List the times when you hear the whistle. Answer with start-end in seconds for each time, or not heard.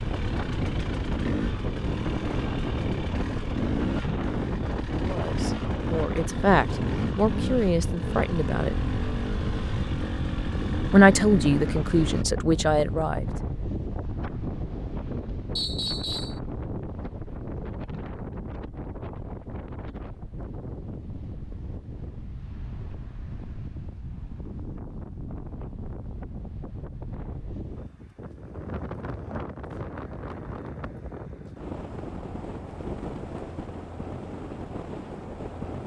15.6-16.4.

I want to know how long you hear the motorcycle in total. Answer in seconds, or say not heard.
12 s.